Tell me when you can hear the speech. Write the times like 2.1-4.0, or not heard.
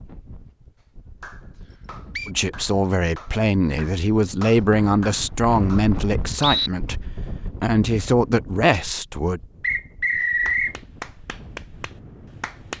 2.2-7.0, 7.6-9.4.